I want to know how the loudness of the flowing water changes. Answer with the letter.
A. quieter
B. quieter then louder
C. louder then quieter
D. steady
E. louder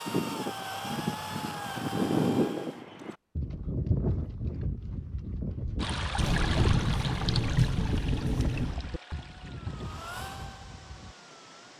A.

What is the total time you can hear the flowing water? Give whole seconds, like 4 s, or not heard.
6 s.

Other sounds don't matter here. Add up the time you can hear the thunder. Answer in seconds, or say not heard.
3 s.